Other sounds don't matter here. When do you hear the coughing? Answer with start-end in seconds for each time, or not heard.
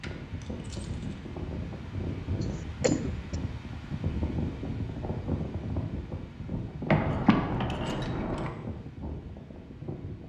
2.8-3.4, 7.0-8.1.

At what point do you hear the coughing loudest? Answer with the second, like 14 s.
3 s.